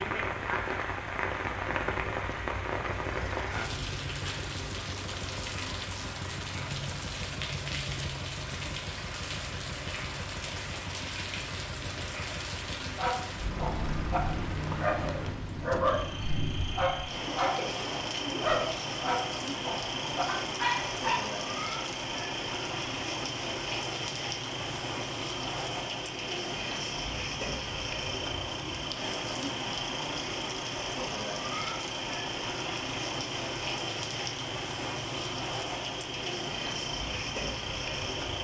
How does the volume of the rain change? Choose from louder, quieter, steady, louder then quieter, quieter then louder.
steady.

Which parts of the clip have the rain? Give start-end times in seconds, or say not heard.
0.0-38.4.